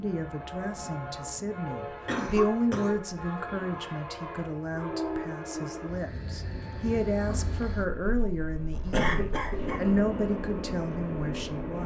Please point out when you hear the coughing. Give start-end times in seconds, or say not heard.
2.0-3.9, 8.9-9.8.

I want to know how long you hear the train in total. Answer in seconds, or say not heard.
12 s.